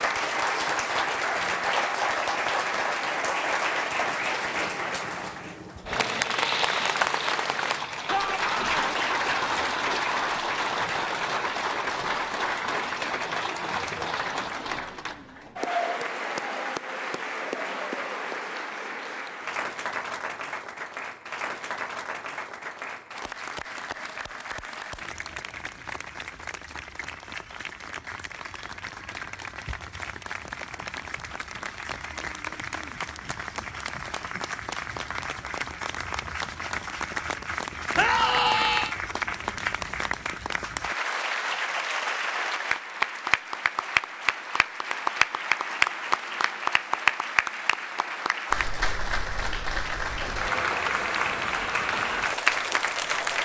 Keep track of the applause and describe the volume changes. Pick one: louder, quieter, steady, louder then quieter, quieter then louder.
quieter then louder.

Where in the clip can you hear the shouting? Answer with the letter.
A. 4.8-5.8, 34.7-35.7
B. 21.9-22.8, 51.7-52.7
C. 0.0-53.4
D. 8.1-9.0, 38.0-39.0
D.